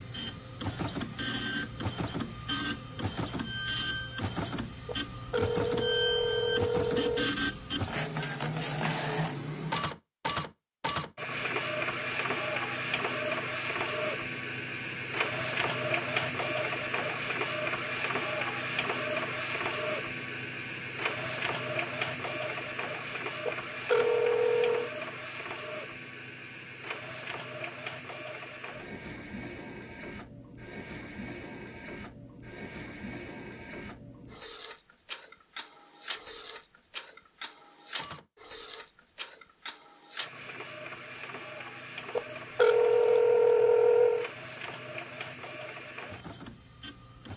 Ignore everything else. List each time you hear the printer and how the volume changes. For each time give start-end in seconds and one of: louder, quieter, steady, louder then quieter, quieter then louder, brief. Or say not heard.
0.0-47.3 quieter.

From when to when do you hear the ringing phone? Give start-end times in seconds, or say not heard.
4.8-7.3, 23.4-24.9, 42.1-44.3.